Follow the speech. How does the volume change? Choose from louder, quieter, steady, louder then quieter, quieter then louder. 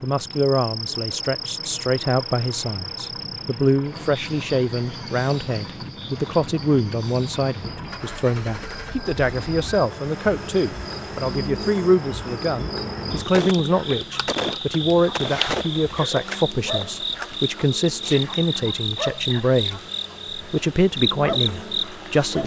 steady.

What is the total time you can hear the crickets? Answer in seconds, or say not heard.
22 s.